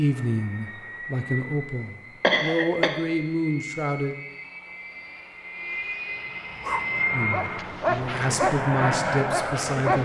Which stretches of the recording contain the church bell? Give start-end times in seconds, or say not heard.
not heard.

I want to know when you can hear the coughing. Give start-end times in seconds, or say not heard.
2.2-2.9.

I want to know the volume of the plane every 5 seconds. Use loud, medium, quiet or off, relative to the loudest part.
medium, loud.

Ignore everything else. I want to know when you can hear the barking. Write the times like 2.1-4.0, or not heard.
6.5-10.0.